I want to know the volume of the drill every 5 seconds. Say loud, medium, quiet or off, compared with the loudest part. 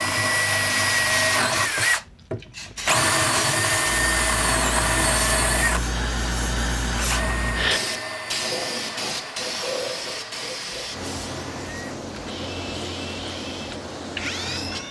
loud, medium, quiet.